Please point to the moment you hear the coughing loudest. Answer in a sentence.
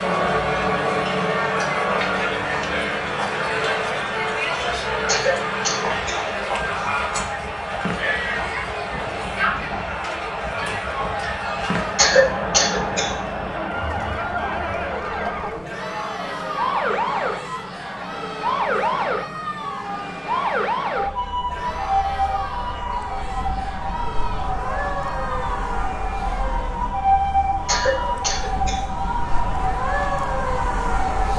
The loudest moment of the coughing is at 12 seconds.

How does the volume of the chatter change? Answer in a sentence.
The volume of the chatter goes down.